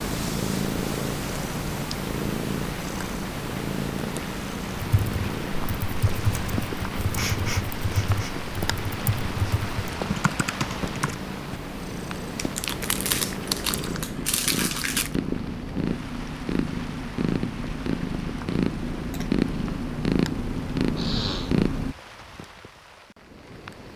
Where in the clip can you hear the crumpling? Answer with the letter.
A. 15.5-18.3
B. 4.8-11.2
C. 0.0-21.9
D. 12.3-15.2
D.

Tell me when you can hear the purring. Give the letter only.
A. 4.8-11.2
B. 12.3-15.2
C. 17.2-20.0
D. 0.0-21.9
D.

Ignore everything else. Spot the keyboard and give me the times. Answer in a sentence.
The keyboard can be heard from 4.8 to 11.2 s.